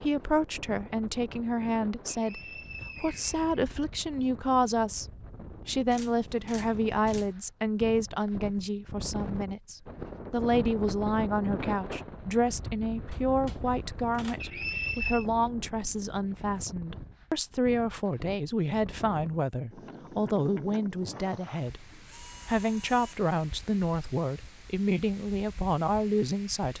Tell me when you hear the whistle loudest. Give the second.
15 s.